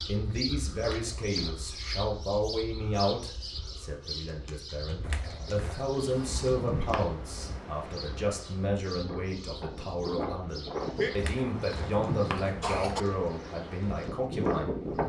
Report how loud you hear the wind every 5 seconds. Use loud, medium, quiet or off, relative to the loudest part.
off, medium, loud.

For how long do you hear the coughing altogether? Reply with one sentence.
You can hear the coughing for 4 seconds altogether.